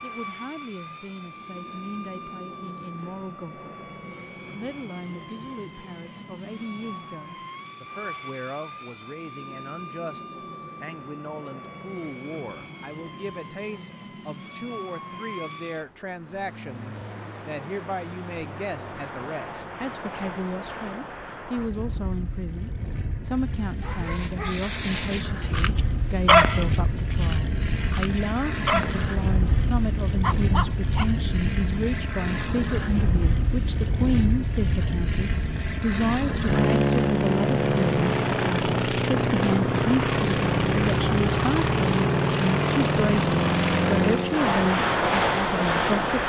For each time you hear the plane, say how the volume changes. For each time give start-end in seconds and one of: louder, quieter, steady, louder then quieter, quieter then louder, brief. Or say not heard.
0.0-46.2 louder.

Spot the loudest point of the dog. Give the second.
26 s.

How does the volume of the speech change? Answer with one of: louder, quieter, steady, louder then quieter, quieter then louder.
louder.